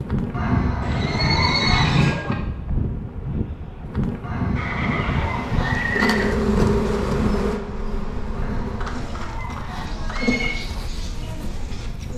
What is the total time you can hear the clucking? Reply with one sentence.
The clucking can be heard for 6 seconds in total.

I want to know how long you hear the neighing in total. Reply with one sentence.
The neighing can be heard for 5 seconds in total.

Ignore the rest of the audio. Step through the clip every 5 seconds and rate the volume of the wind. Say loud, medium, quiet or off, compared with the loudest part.
loud, loud, medium.